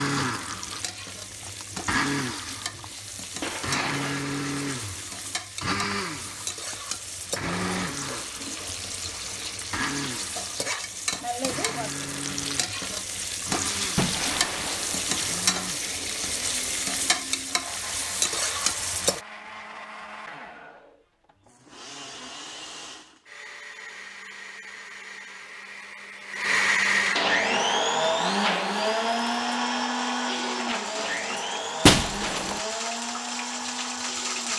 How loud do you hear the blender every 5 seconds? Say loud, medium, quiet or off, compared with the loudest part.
medium, medium, quiet, quiet, quiet, loud, medium.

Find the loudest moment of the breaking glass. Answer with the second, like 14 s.
32 s.